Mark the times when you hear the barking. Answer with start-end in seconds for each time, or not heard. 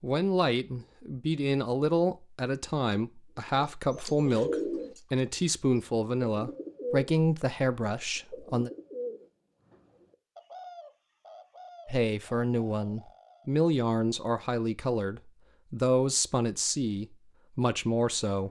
not heard.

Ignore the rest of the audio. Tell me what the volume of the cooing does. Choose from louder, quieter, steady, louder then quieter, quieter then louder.
quieter.